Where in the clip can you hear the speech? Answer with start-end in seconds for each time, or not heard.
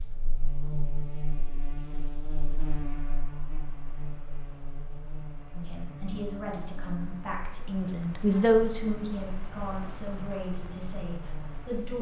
5.5-11.9.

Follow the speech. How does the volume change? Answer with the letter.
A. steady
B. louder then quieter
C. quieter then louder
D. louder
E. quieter
B.